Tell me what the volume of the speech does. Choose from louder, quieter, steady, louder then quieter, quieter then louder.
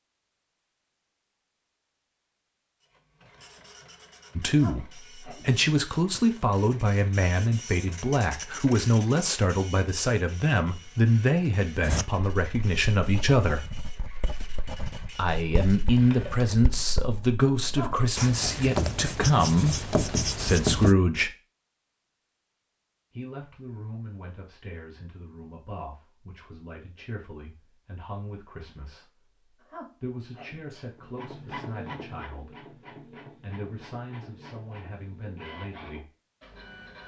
quieter.